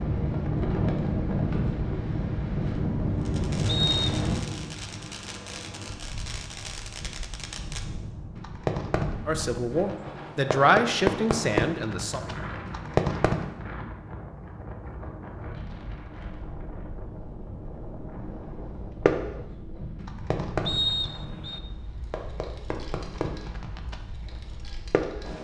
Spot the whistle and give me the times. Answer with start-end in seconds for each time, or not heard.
3.6-4.1, 20.6-21.6.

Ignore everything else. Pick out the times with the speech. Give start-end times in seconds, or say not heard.
9.2-12.2.